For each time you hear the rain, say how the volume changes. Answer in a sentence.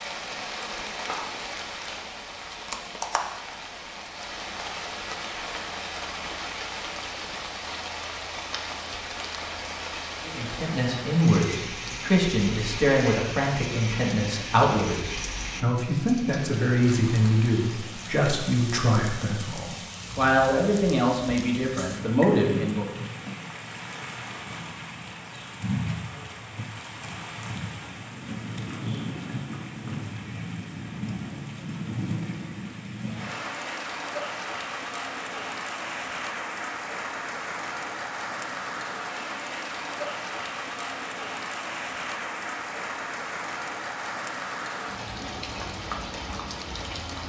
You can hear the rain from 0.0 to 47.2 s, at a steady volume.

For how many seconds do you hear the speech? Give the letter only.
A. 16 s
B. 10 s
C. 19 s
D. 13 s
D.